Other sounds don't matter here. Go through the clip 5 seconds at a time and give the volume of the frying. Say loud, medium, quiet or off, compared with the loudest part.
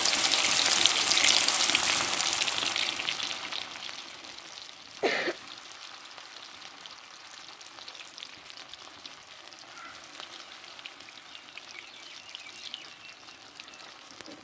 loud, quiet, quiet.